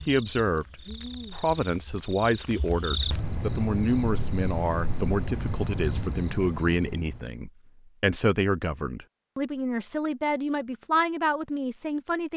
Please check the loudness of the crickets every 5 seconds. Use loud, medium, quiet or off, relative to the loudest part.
loud, loud, off.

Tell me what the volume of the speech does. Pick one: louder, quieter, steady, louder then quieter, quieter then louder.
steady.